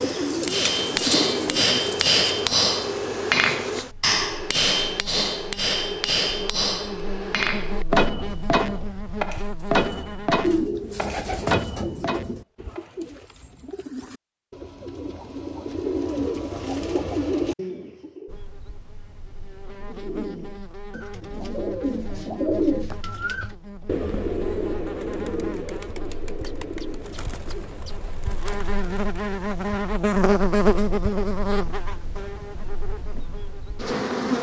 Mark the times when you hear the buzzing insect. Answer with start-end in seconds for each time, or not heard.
0.0-10.7, 18.2-34.3.